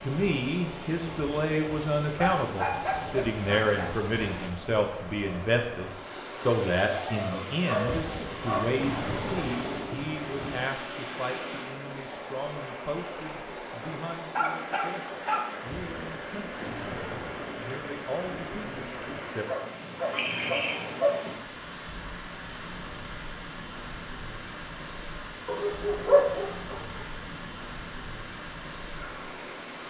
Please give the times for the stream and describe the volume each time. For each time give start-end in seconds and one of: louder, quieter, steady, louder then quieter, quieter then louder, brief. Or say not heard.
0.0-29.8 steady.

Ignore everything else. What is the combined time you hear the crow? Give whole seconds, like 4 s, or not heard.
not heard.